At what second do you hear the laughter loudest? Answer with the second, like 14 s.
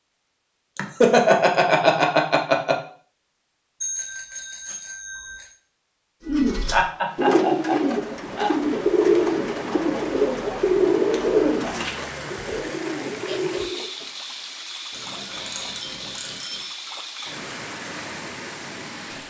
1 s.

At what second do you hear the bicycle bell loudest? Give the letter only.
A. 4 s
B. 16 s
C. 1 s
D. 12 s
A.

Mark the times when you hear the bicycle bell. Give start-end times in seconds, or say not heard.
3.8-5.5, 14.9-16.6.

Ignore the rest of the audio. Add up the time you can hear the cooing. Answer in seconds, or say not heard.
8 s.